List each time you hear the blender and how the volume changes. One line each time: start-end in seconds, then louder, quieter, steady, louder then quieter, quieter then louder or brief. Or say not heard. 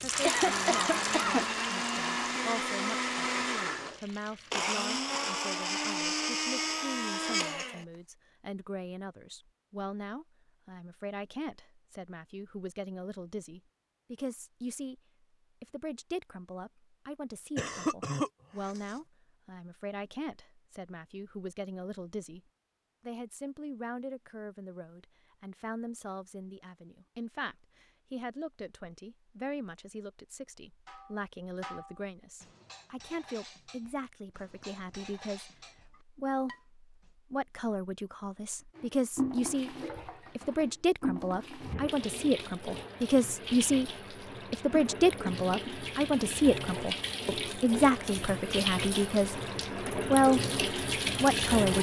0.0-7.8 steady.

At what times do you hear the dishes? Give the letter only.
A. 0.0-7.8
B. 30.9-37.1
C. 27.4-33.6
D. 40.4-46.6
B.